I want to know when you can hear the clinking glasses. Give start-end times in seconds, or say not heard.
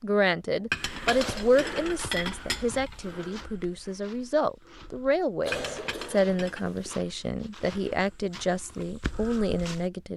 0.7-3.1, 5.5-6.6.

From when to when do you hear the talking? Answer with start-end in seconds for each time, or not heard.
0.0-10.1.